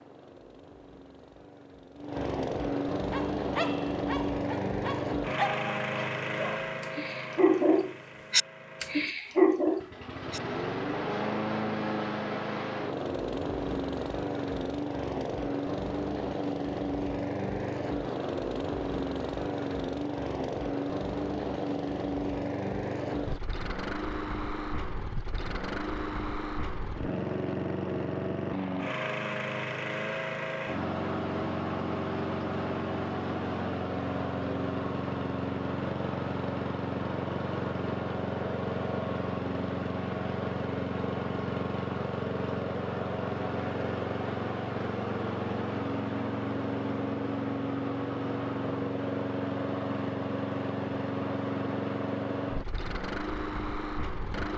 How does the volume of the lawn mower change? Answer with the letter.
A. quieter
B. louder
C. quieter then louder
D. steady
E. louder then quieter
D.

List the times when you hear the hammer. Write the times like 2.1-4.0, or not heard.
not heard.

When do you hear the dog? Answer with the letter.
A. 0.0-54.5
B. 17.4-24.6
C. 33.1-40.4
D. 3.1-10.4
D.